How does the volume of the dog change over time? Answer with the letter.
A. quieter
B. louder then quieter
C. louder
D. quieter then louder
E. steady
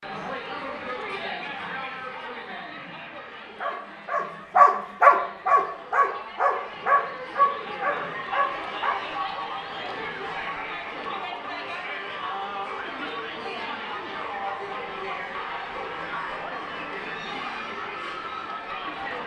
A.